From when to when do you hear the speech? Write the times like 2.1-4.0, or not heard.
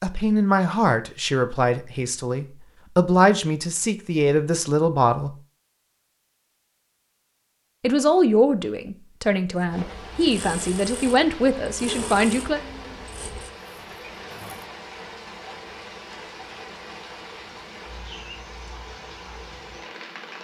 0.0-5.3, 7.8-12.6.